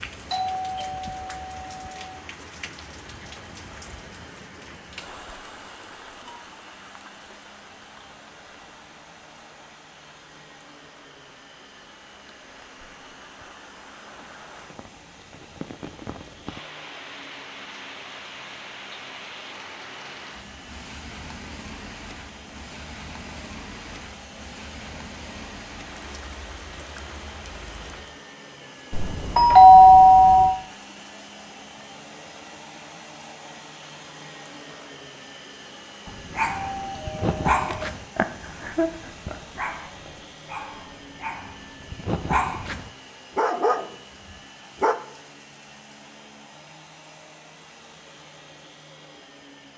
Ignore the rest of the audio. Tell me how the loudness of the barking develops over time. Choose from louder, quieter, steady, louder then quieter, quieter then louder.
quieter then louder.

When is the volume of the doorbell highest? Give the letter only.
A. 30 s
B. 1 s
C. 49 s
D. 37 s
A.